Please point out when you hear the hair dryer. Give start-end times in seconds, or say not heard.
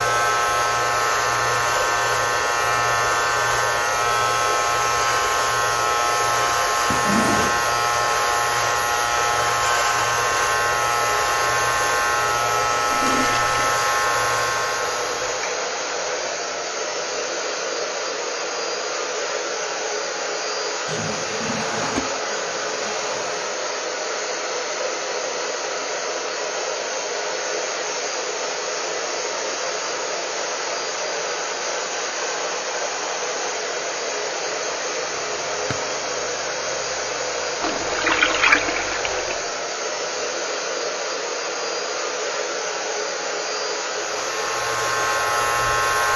0.0-46.1.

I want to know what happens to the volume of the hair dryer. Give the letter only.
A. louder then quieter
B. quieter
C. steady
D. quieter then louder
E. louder
C.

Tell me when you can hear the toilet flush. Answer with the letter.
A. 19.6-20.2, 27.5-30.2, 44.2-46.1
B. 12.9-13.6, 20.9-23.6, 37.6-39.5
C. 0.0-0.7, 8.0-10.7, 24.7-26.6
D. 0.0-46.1
B.